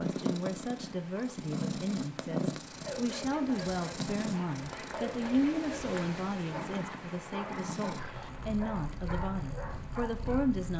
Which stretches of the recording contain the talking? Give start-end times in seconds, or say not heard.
0.0-10.7.